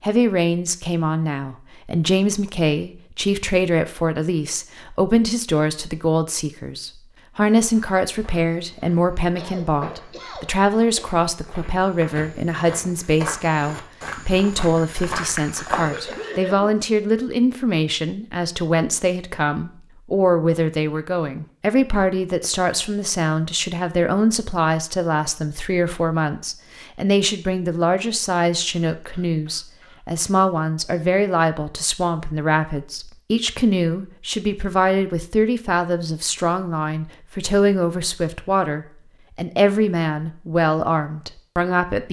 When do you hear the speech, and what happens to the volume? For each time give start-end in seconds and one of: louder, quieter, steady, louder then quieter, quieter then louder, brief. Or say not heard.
0.0-42.0 steady.